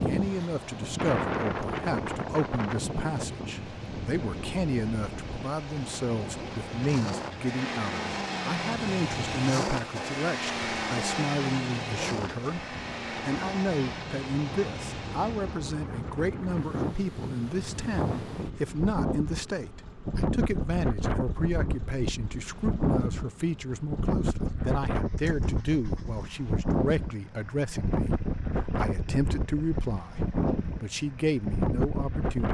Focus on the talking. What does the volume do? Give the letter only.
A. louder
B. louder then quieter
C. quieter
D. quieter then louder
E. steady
E.